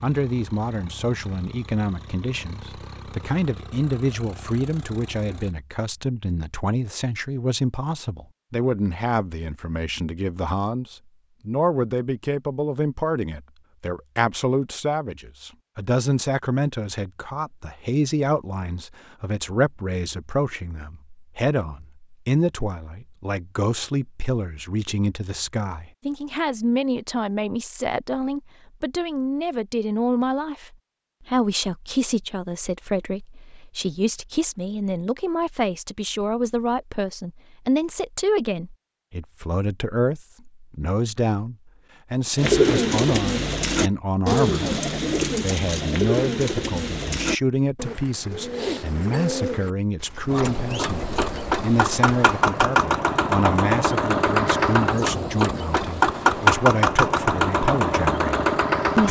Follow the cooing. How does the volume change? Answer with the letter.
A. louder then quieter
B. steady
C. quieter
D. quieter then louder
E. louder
C.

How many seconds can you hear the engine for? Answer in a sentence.
The engine can be heard for 14 seconds in total.